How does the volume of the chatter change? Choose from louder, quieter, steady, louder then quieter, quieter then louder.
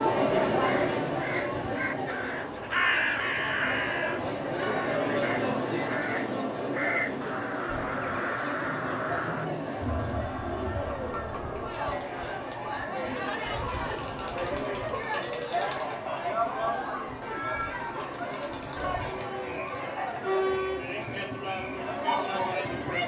steady.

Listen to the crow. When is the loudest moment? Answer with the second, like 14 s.
3 s.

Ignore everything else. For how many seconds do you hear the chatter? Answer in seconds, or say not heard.
23 s.